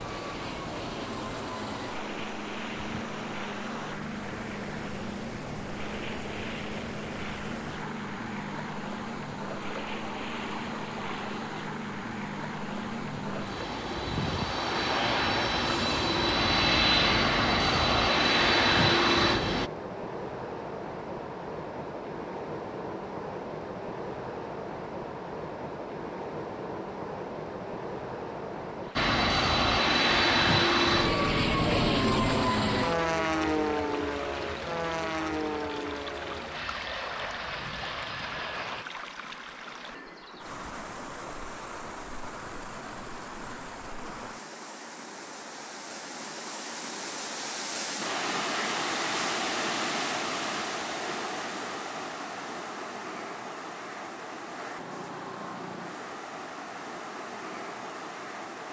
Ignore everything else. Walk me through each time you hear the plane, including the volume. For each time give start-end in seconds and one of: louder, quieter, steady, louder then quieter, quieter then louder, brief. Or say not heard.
0.0-19.7 louder
28.9-38.9 quieter.